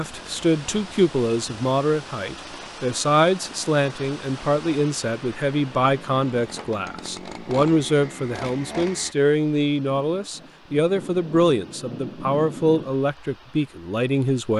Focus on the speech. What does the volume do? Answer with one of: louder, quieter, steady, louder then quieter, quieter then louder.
steady.